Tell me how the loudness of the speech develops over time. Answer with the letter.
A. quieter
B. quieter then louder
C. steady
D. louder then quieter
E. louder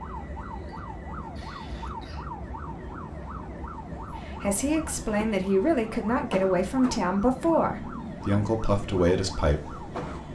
C.